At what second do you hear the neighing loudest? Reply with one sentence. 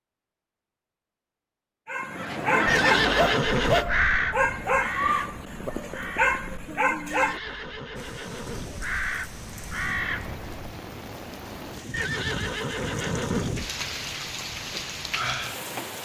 The volume of the neighing peaks at 3 seconds.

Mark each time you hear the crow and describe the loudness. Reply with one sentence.
The crow can be heard from 2.1 to 10.7 s, getting quieter then louder.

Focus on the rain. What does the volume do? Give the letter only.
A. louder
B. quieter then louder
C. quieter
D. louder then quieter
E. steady
A.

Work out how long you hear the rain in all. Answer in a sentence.
The rain can be heard for 8 seconds in total.